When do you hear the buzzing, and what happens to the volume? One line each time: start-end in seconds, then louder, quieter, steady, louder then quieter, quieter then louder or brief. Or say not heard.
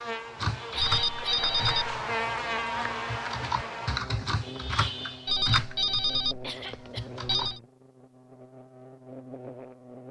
0.0-10.0 quieter.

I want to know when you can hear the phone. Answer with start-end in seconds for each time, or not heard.
0.8-2.0, 5.2-7.6.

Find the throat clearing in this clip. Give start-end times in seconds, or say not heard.
0.7-1.4, 6.4-7.2.